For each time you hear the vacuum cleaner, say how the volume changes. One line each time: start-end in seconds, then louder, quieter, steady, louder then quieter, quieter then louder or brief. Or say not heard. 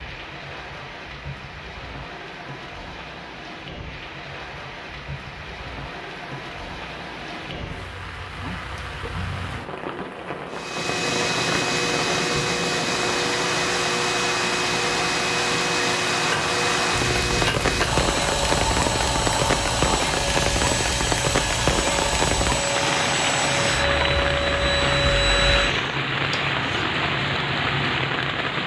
10.5-26.9 steady.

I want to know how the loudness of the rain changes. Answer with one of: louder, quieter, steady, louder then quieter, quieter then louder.
louder.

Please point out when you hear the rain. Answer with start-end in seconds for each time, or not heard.
0.0-28.6.